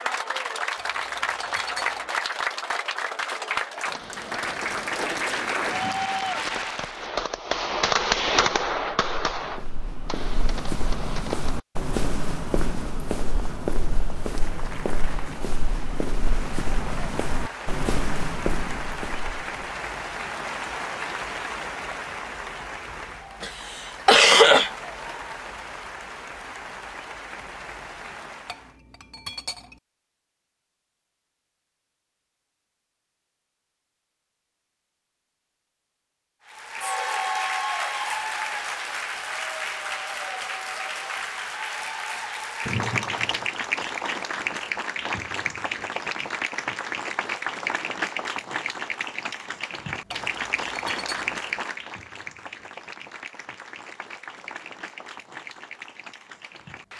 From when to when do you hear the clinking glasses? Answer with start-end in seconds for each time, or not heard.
0.8-2.1, 28.4-29.8, 50.1-51.1.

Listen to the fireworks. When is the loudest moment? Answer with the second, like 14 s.
8 s.